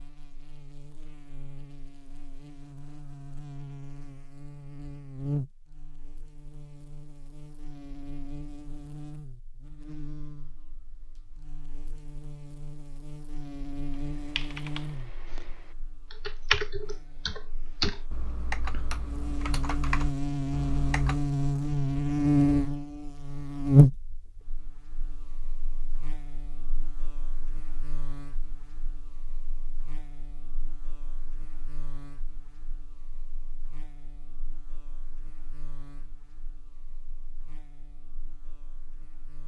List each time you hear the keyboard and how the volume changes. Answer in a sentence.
The keyboard can be heard from 13.9 to 21.2 s, getting louder then quieter.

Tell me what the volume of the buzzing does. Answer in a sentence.
The volume of the buzzing goes up, then down.